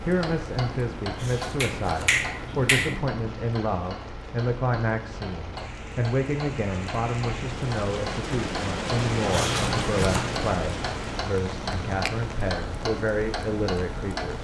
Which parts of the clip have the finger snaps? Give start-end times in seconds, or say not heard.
1.6-3.0.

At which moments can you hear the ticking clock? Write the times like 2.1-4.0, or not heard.
0.0-14.3.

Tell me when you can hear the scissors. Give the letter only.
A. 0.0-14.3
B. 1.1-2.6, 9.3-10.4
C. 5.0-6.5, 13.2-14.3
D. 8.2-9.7
B.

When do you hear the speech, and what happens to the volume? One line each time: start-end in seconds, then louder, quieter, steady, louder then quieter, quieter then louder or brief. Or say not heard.
0.0-14.3 steady.